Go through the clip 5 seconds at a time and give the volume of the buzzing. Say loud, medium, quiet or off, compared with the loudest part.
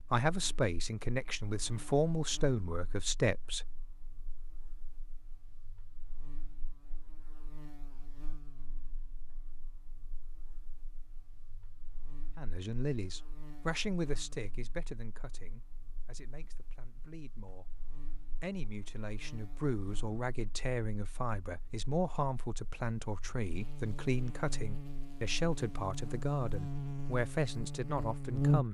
quiet, quiet, quiet, quiet, quiet, loud.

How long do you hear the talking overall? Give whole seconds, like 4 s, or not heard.
19 s.